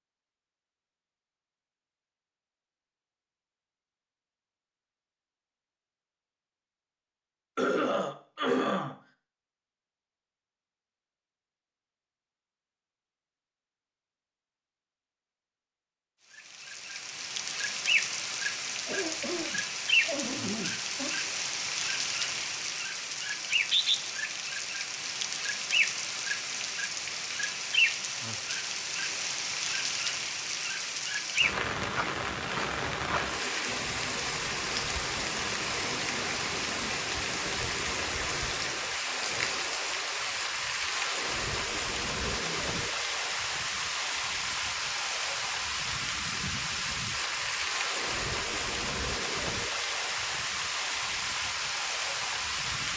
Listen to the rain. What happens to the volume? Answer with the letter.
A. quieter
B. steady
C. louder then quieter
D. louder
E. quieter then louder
B.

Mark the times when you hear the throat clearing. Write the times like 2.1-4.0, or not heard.
7.5-8.9, 18.9-21.1, 42.2-42.9.